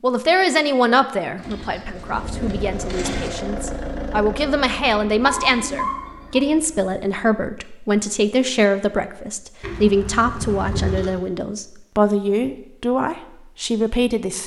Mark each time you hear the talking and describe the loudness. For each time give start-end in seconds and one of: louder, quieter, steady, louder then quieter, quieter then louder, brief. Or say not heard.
0.0-14.4 steady.